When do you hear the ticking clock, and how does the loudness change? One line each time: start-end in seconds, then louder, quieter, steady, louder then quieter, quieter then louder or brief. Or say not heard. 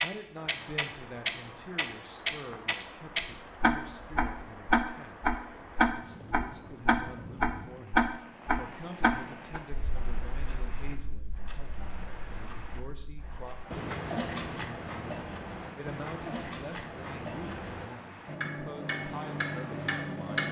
0.0-20.4 quieter.